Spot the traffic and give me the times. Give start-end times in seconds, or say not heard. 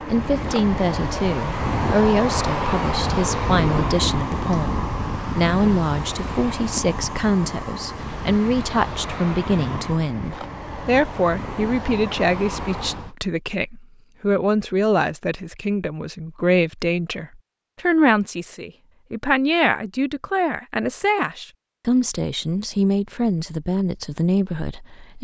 0.0-13.2.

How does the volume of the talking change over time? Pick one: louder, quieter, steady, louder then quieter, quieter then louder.
steady.